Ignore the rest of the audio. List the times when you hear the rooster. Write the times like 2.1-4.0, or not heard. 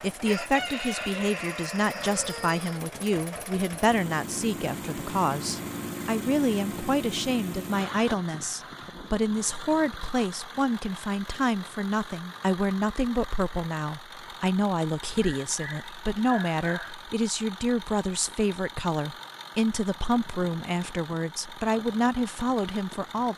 0.2-3.0.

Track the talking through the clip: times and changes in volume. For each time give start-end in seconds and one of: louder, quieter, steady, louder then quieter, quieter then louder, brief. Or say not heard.
0.0-23.3 steady.